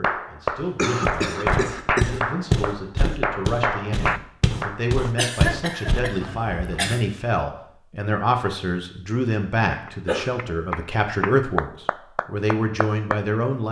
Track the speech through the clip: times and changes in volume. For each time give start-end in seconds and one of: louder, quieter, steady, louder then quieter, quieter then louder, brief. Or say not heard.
0.0-13.6 louder.